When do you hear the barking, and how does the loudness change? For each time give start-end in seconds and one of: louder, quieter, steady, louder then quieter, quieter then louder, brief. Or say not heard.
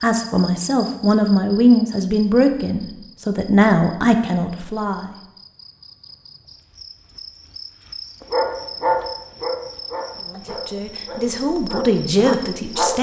8.2-12.9 quieter then louder.